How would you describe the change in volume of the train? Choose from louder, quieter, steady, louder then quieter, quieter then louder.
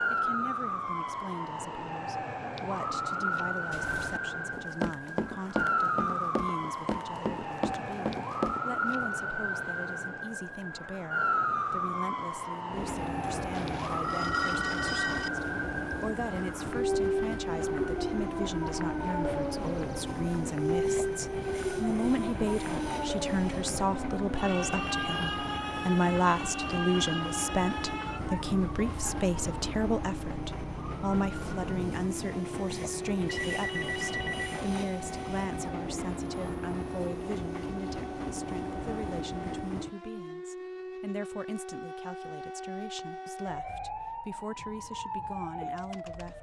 steady.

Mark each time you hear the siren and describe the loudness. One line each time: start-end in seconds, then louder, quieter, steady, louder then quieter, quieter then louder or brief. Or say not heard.
0.0-46.3 quieter.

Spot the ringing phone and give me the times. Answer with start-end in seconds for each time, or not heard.
13.5-15.3, 33.2-34.6.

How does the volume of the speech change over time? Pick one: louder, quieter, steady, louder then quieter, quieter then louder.
louder then quieter.